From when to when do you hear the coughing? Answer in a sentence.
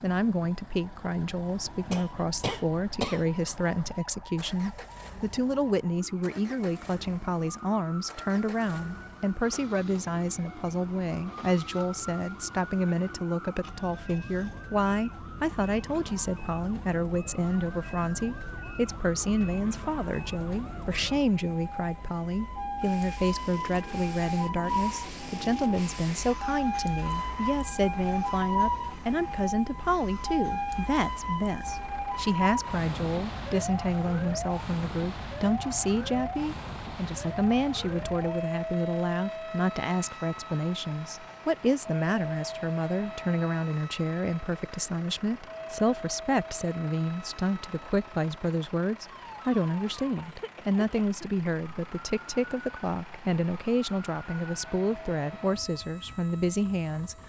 You can hear the coughing from 1.9 to 3.3 s and from 50.1 to 51.5 s.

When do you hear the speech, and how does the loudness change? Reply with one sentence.
You can hear the speech from 0.0 to 57.1 s, at a steady volume.